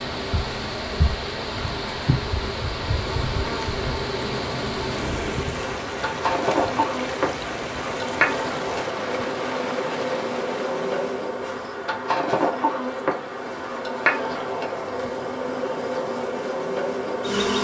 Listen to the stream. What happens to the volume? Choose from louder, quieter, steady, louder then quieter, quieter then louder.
steady.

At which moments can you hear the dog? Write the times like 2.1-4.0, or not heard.
not heard.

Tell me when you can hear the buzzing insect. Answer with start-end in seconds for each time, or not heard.
0.0-17.5.